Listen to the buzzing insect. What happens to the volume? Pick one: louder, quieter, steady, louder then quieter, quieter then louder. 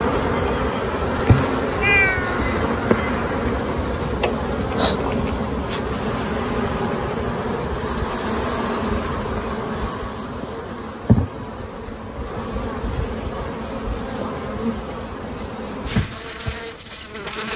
quieter.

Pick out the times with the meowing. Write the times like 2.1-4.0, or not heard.
1.8-2.5.